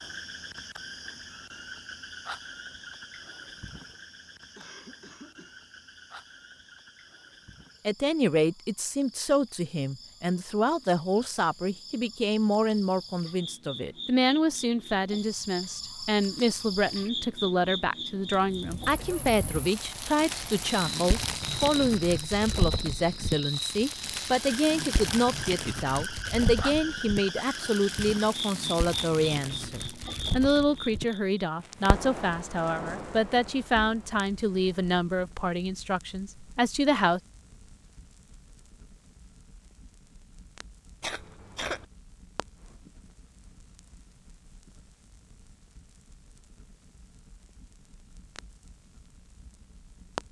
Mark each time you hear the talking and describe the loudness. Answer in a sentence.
You can hear the talking from 7.8 to 37.2 s, at a steady volume.